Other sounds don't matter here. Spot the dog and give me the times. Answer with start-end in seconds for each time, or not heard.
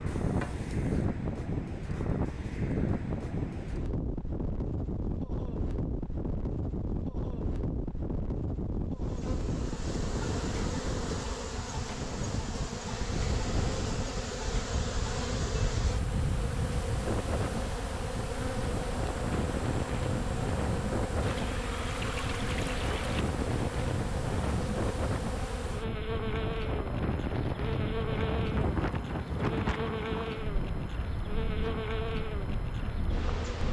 not heard.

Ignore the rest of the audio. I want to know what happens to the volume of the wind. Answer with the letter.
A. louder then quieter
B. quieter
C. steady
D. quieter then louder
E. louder
C.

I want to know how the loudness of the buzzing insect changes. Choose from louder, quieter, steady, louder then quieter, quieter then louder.
steady.